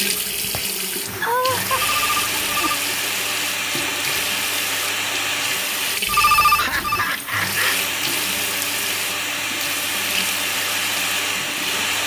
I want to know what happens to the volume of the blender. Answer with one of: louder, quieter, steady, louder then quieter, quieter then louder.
steady.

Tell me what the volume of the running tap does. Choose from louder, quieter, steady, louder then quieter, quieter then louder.
steady.